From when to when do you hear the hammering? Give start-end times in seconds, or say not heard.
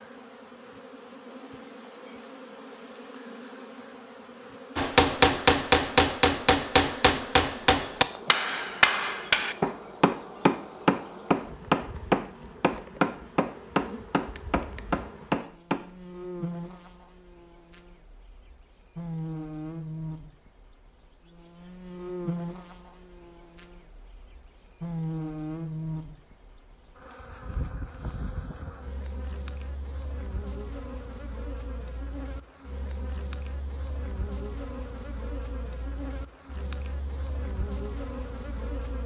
4.8-15.8.